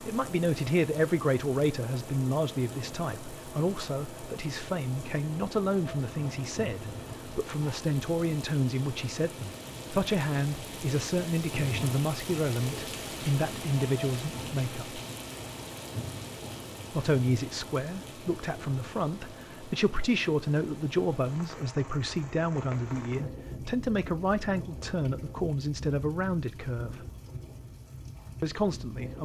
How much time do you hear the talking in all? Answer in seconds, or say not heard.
26 s.